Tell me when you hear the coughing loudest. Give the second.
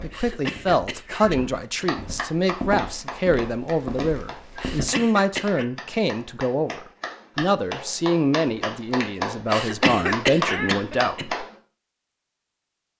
10 s.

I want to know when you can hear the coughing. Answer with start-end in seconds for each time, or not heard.
0.1-1.9, 4.6-5.7, 9.5-11.2.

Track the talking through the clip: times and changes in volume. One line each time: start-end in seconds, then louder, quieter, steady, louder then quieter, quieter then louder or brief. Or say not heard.
0.0-11.3 steady.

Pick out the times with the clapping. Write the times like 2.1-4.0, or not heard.
1.8-11.6.